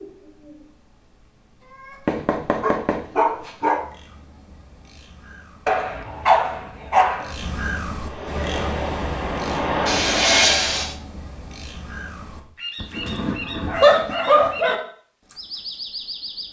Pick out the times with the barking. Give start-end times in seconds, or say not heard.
2.0-3.9, 5.7-7.3, 12.8-14.8.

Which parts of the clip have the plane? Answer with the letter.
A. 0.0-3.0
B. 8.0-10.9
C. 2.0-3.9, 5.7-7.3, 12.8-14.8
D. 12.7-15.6
B.